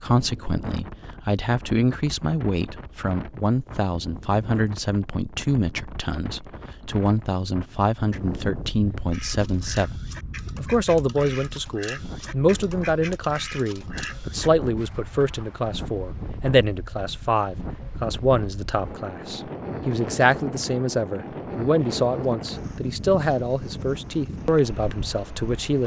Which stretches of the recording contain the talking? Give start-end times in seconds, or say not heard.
0.0-25.8.